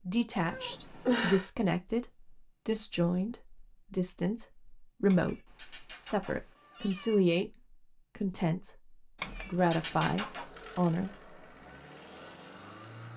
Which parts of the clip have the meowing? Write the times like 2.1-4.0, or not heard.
0.3-1.5, 5.0-7.2, 9.2-10.4.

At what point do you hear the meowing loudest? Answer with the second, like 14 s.
1 s.